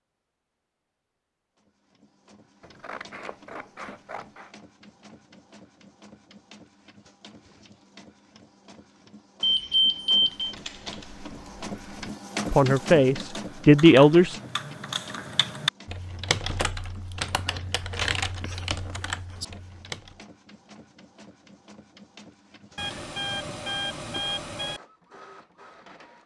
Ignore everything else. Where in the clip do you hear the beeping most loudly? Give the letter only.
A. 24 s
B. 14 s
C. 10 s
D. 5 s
C.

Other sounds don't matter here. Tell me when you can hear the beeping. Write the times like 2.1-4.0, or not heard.
9.4-10.5, 22.8-24.8.